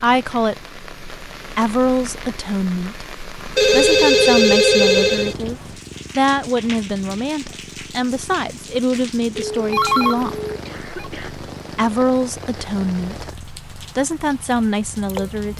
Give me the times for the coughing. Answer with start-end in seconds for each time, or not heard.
10.7-11.3.